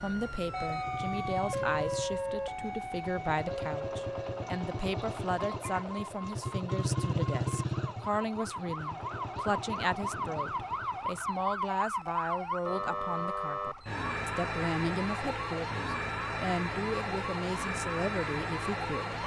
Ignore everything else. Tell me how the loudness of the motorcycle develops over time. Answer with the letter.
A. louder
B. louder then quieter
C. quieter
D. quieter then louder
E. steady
B.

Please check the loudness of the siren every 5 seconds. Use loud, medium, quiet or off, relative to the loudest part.
loud, medium, loud, loud.